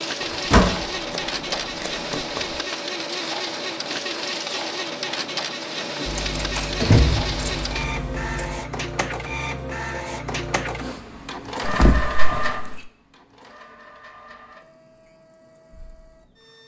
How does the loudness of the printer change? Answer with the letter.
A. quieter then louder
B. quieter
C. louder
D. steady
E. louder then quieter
B.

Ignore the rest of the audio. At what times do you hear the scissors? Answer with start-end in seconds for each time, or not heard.
0.2-2.6, 6.0-8.7, 11.7-12.9.